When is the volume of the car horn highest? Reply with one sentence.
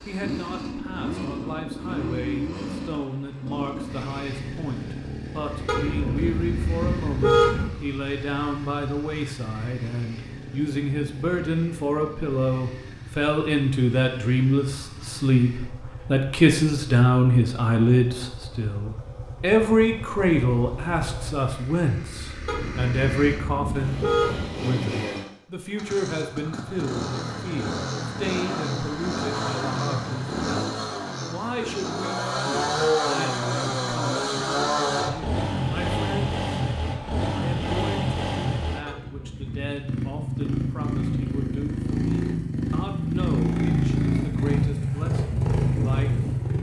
The loudest moment of the car horn is at 7 seconds.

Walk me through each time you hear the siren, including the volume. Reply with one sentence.
You can't hear the siren here.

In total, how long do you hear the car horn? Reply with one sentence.
The car horn can be heard for 5 seconds in total.